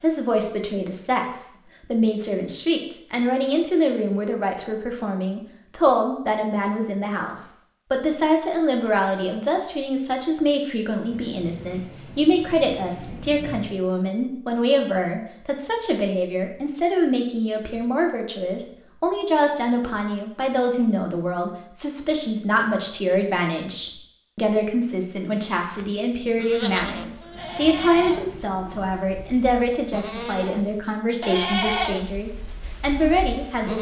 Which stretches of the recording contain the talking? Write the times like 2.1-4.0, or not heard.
0.0-33.7.